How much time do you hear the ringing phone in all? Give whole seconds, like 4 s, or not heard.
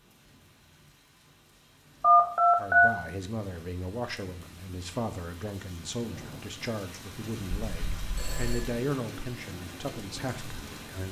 2 s.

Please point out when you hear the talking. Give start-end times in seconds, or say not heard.
2.5-11.0.